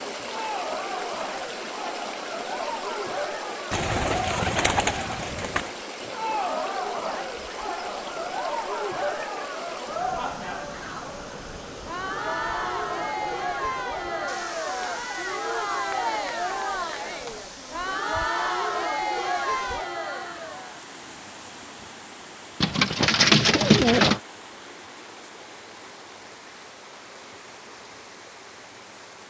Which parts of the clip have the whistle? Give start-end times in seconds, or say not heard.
not heard.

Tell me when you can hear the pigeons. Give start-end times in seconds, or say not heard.
3.7-5.7, 22.6-24.2.